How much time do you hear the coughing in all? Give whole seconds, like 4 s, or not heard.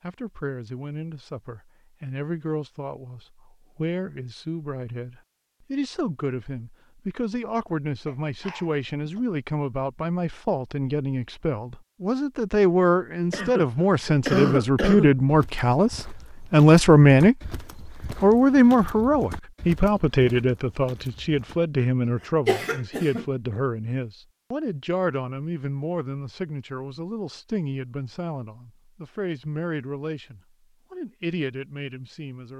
4 s.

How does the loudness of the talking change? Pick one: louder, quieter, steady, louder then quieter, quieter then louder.
louder then quieter.